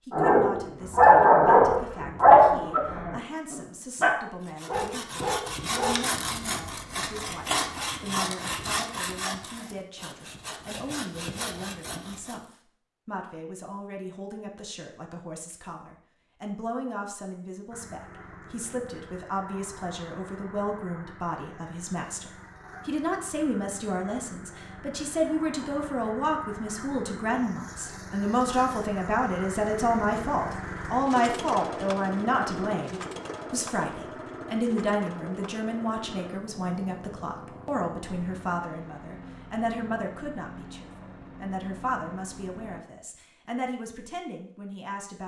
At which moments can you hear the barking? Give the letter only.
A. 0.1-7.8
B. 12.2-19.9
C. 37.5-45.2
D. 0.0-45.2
A.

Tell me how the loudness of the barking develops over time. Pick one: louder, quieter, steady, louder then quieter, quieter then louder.
quieter.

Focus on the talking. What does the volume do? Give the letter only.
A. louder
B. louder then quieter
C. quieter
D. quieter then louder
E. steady
B.